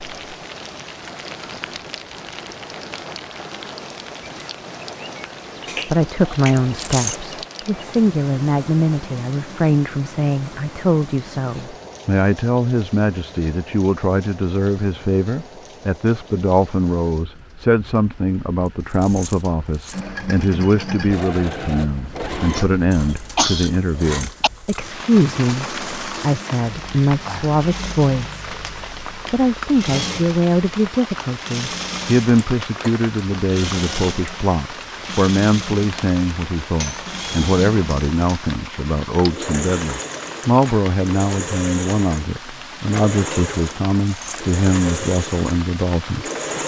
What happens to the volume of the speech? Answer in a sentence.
The volume of the speech stays about the same.